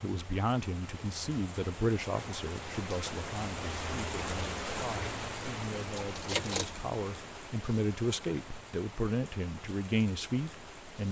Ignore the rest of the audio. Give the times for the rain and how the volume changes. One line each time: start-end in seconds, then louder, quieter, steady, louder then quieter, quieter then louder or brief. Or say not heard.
0.0-11.0 louder then quieter.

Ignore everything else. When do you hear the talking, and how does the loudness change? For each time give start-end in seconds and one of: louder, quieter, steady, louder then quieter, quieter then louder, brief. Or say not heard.
0.0-11.0 quieter then louder.